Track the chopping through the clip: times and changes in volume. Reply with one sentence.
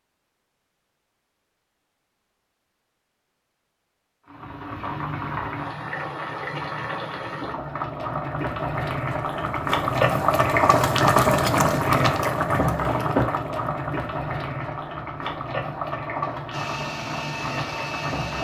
The chopping can't be heard in this clip.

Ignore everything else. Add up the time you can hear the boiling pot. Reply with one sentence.
The boiling pot can be heard for 14 seconds in total.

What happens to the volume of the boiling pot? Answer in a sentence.
The loudness of the boiling pot goes up, then down.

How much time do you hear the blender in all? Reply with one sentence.
The blender can be heard for 2 seconds in total.